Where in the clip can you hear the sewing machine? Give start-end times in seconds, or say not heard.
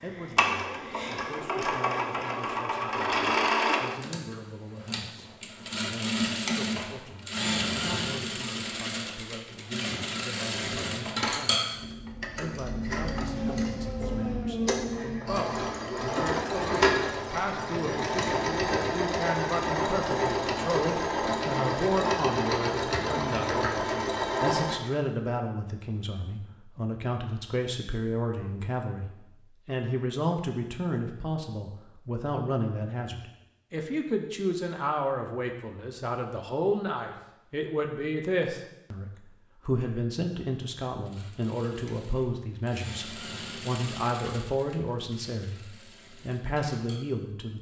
0.0-24.8, 41.0-47.5.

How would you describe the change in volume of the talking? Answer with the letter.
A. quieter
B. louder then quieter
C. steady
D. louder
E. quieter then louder
D.